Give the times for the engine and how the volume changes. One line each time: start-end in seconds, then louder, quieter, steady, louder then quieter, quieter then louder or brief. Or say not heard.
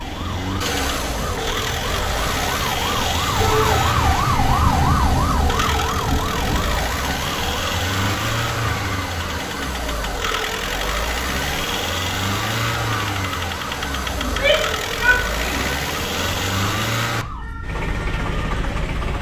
0.0-19.1 steady.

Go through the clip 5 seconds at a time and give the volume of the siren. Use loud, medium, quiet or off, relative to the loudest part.
loud, loud, medium, medium.